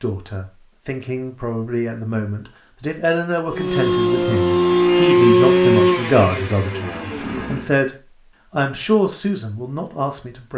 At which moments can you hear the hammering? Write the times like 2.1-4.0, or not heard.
not heard.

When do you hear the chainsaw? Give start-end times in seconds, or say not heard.
3.5-7.7.